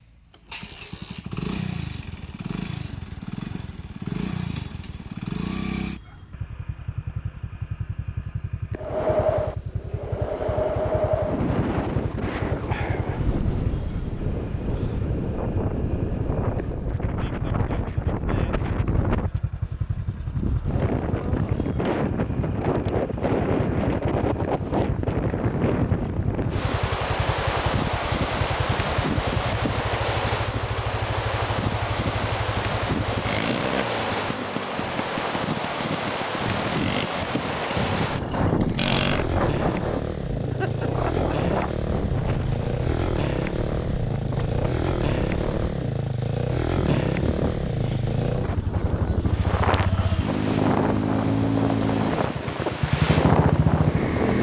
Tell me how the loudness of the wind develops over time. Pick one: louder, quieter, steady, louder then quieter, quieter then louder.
steady.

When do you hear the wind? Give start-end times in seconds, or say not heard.
8.8-54.3.